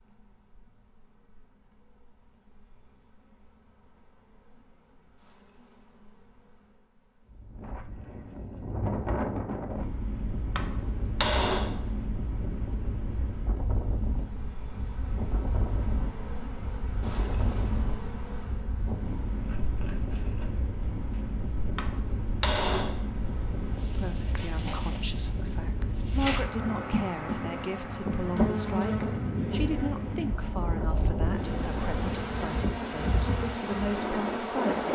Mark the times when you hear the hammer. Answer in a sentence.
The hammer can be heard from 10.6 to 12.1 s and from 21.8 to 23.1 s.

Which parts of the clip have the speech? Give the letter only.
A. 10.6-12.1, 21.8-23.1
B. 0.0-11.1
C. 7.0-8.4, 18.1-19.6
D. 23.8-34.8
D.